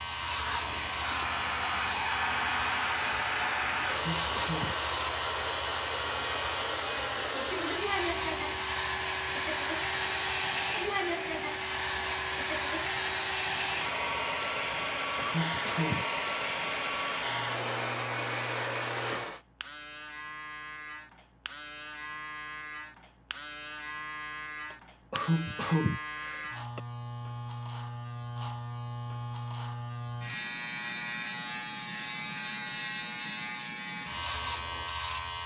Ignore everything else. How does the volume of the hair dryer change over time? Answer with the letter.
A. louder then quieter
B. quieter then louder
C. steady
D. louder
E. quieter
C.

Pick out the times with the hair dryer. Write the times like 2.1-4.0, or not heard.
0.0-19.4.